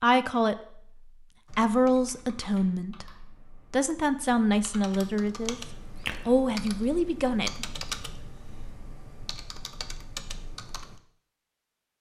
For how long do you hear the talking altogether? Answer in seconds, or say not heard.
7 s.